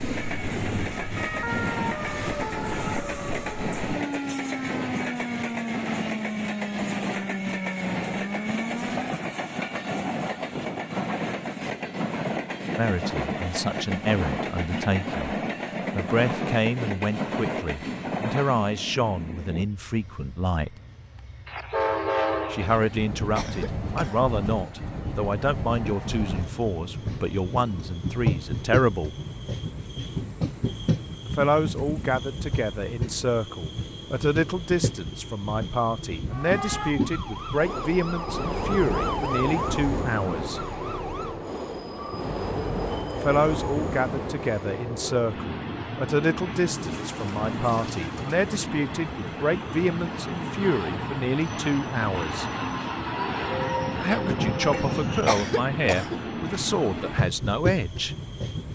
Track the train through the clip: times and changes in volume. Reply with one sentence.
The train can be heard from 0.0 to 58.7 s, at a steady volume.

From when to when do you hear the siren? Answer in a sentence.
The siren can be heard from 0.0 to 9.1 s and from 36.3 to 41.5 s.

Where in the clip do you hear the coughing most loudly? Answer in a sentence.
The volume of the coughing peaks at 55 seconds.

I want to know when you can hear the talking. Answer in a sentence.
The talking can be heard from 12.8 to 15.2 s, from 15.9 to 20.8 s, from 22.5 to 29.1 s, from 31.2 to 40.6 s, from 43.1 to 52.5 s and from 54.0 to 58.1 s.